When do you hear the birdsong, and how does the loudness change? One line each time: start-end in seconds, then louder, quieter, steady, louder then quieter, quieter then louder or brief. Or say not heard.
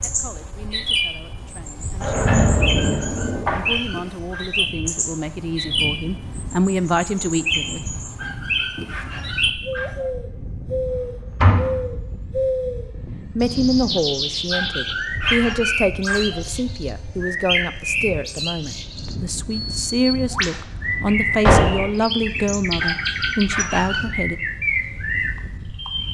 0.0-26.0 steady.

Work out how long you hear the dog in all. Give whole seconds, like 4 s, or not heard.
7 s.